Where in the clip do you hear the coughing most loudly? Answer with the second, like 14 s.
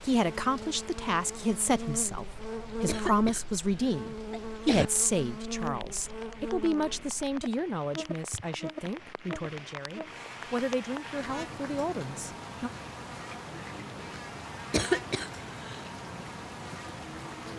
15 s.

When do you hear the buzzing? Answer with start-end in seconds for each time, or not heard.
0.1-17.5.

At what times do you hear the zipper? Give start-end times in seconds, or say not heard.
not heard.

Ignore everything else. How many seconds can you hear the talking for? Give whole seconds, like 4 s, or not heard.
13 s.